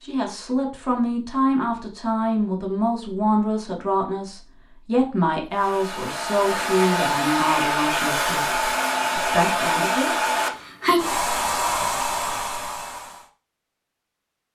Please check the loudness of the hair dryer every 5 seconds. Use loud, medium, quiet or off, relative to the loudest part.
off, loud, loud.